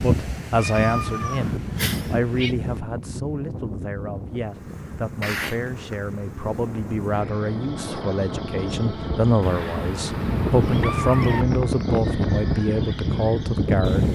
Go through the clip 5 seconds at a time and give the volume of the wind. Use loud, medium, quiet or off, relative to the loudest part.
medium, medium, loud.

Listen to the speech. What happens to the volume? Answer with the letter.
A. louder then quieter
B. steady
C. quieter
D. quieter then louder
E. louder
D.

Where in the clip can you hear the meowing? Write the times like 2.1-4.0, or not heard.
0.6-2.5, 5.2-5.8, 9.4-11.4.